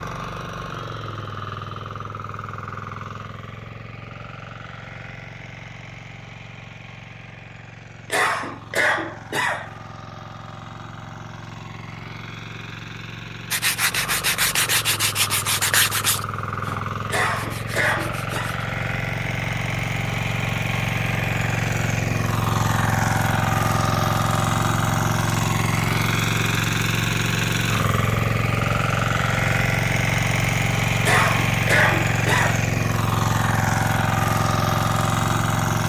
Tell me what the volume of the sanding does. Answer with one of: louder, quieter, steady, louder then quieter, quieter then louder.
quieter.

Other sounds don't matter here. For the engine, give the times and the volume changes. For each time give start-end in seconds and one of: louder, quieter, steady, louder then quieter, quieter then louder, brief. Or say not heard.
0.0-35.8 louder.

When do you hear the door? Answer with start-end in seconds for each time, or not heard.
not heard.